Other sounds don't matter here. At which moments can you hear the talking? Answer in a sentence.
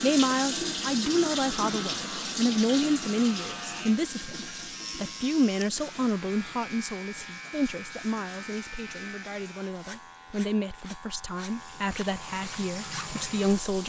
The talking can be heard from 0.0 to 13.8 s.